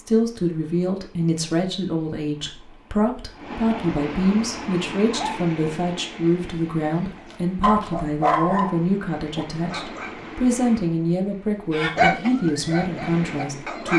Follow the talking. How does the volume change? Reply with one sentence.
The volume of the talking stays about the same.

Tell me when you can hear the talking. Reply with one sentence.
You can hear the talking from 0.0 to 13.9 s.